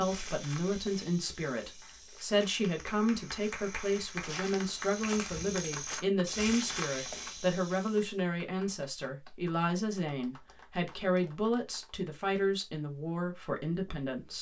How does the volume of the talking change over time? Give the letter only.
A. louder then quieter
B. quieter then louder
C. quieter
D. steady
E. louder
D.